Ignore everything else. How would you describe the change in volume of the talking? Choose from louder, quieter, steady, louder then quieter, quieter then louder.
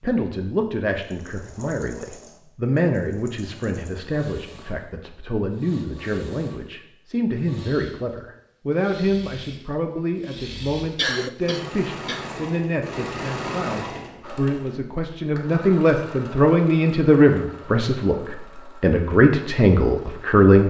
louder.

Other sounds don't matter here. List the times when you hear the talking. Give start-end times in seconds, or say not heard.
0.0-20.6.